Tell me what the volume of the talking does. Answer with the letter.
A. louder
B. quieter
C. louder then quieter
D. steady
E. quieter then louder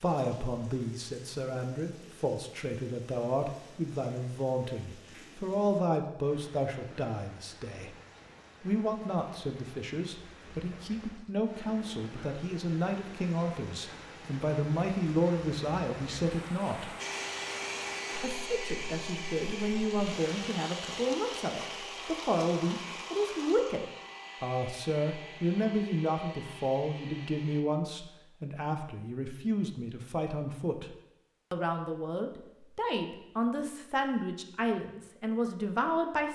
D.